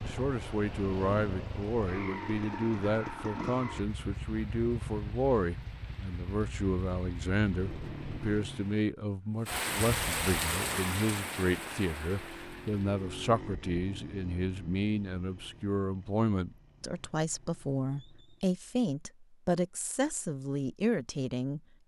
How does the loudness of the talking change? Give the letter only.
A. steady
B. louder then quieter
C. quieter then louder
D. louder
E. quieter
A.